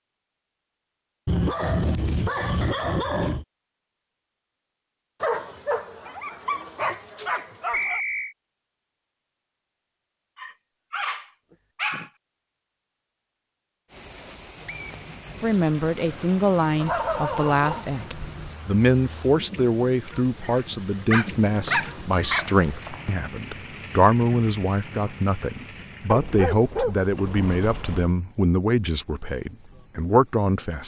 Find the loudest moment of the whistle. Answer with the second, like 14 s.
8 s.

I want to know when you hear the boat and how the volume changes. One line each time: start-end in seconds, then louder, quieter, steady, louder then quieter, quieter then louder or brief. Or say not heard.
not heard.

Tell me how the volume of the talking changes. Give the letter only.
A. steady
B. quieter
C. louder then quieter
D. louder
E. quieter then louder
A.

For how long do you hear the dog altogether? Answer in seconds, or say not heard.
12 s.